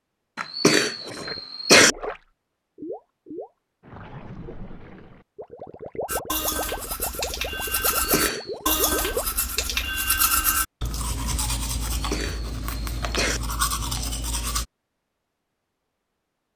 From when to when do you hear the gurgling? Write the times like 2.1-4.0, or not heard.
1.0-9.8.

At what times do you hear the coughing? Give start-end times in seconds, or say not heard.
0.3-1.9, 7.8-8.5, 11.8-13.4.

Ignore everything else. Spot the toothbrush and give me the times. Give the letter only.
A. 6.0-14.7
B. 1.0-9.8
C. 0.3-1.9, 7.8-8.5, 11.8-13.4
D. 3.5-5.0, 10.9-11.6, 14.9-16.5
A.